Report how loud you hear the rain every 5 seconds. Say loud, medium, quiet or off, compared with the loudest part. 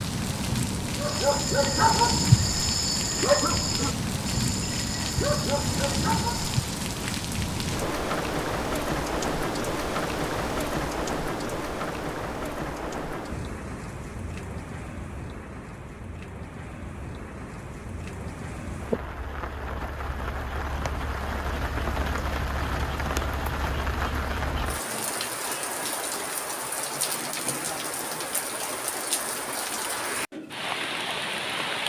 loud, loud, loud, medium, loud, loud, loud.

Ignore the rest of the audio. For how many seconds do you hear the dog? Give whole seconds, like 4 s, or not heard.
6 s.